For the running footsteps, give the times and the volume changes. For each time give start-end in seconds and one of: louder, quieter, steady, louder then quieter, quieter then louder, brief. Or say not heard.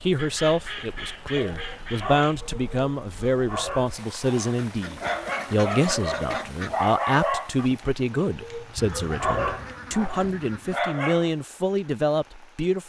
not heard.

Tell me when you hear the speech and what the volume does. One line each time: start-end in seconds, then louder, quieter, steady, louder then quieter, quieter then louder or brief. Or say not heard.
0.0-12.8 steady.